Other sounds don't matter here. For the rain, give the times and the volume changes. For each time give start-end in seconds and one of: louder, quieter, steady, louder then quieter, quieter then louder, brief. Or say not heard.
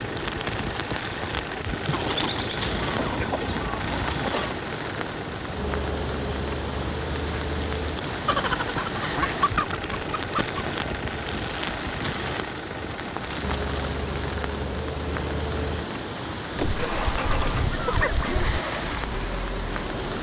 0.0-20.1 steady.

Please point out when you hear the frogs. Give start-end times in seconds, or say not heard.
not heard.